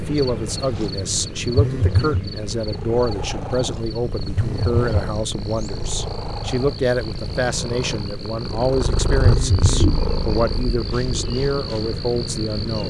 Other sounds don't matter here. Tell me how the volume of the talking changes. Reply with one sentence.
The loudness of the talking stays about the same.